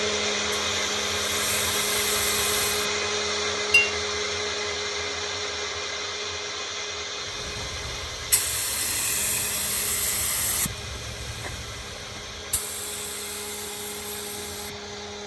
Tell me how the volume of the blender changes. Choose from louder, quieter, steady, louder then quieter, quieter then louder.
quieter.